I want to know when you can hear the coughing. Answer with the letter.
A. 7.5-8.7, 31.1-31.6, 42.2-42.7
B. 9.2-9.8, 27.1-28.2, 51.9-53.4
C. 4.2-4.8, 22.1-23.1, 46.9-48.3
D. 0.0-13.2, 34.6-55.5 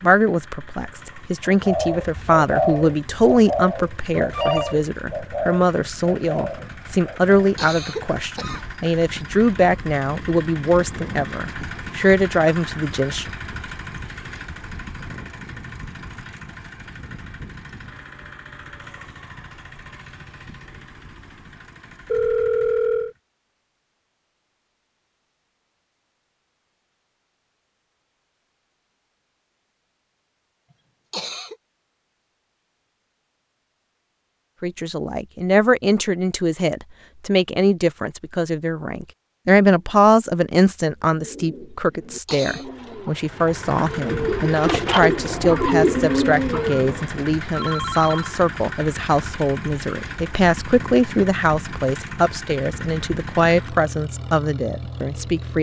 A.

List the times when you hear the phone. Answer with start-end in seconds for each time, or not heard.
4.2-4.8, 22.1-23.1, 46.9-48.3.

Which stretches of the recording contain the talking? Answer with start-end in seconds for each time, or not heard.
0.0-13.2, 34.6-55.5.